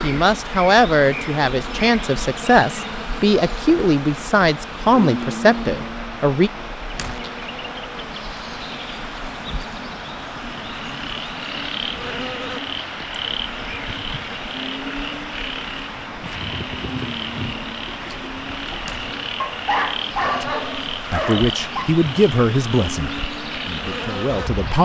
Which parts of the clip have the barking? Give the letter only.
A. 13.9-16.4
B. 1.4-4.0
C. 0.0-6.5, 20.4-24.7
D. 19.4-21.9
D.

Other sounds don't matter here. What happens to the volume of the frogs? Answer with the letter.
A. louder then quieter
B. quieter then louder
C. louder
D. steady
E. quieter
D.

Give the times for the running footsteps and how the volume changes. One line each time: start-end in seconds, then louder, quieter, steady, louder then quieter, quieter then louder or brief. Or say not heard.
not heard.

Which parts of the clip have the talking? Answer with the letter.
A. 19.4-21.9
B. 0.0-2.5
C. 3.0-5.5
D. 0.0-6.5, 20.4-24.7
D.